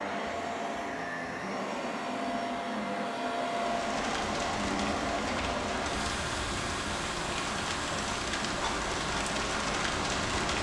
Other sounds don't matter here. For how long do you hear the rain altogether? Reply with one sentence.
The rain can be heard for 7 seconds in total.